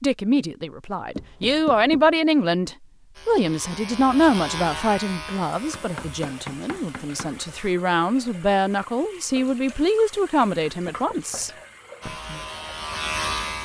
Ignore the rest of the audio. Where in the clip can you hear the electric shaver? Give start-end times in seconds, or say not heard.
3.1-7.8, 12.0-13.6.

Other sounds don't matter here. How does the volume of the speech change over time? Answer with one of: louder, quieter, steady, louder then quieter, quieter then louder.
quieter then louder.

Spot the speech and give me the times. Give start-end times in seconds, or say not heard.
0.0-12.4.